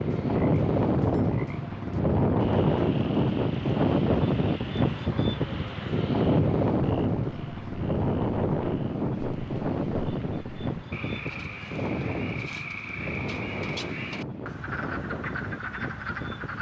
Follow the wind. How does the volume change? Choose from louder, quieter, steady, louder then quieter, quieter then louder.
quieter.